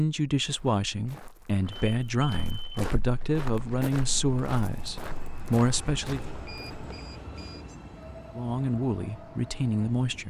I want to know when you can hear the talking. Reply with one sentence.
You can hear the talking from 0.0 to 6.3 s and from 8.3 to 10.2 s.